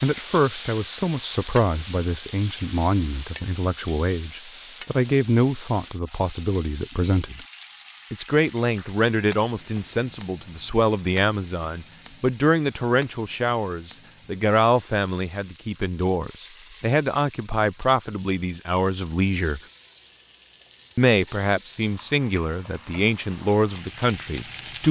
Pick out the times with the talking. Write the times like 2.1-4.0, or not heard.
0.0-7.4, 8.1-19.6, 20.9-24.8.